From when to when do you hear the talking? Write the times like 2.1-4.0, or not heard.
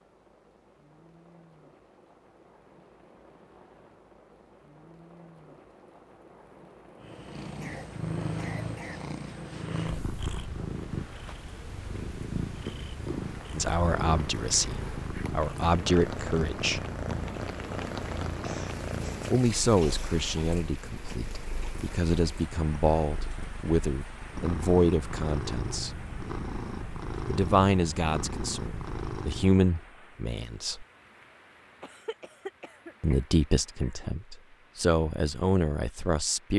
13.6-16.8, 19.3-26.0, 27.2-30.9, 33.0-36.5.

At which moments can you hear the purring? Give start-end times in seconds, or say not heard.
7.0-29.6.